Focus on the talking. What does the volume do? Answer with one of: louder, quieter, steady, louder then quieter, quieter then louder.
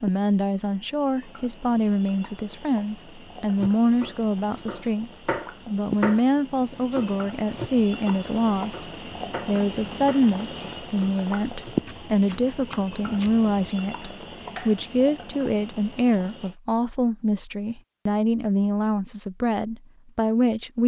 steady.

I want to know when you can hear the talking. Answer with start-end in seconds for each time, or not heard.
0.0-20.8.